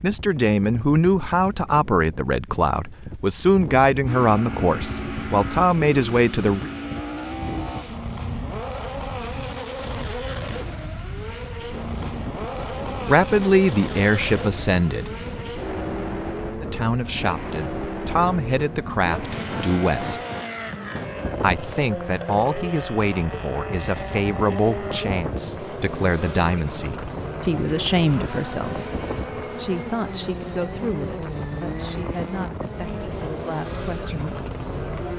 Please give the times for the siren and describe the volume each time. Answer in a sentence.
You can't hear the siren here.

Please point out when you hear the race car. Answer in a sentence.
The race car can be heard from 4.0 to 35.1 s.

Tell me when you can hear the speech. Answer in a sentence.
The speech can be heard from 0.0 to 6.7 s, from 13.1 to 15.1 s, from 16.6 to 20.2 s and from 21.4 to 34.5 s.